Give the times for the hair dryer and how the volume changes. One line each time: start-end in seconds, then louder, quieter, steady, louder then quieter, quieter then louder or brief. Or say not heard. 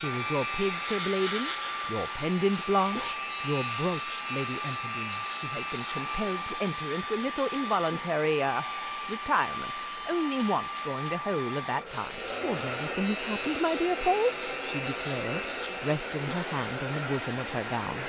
0.0-18.0 steady.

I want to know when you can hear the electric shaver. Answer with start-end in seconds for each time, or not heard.
0.0-18.0.